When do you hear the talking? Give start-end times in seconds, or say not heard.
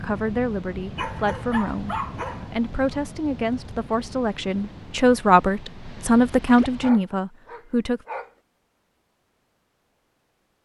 0.0-8.0.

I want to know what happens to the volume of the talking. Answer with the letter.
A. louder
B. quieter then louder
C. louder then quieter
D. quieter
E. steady
A.